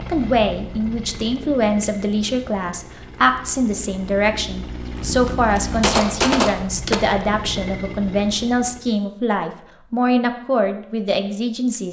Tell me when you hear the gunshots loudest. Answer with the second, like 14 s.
6 s.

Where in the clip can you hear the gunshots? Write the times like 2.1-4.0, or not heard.
5.0-7.0.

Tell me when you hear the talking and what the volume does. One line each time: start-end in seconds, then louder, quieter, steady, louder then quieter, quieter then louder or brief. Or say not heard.
0.0-11.8 steady.